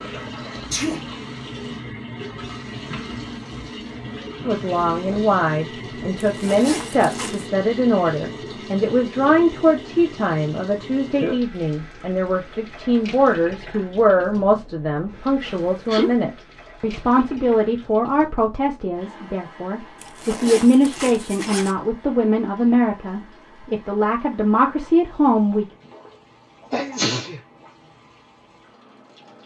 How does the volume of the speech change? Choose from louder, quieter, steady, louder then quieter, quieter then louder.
steady.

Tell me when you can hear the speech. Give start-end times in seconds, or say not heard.
4.5-25.6.